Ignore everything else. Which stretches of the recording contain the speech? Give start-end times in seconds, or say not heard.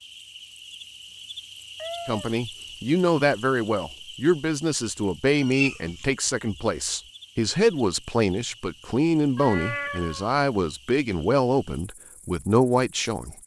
2.0-13.3.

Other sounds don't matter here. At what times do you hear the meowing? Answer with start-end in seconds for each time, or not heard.
1.8-2.4, 5.2-6.0, 9.3-10.3.